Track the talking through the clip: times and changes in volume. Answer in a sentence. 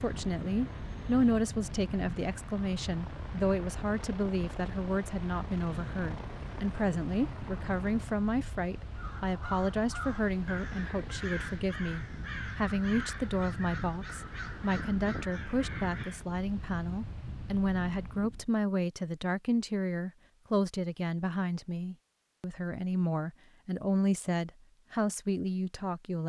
The talking can be heard from 0.0 to 26.2 s, at a steady volume.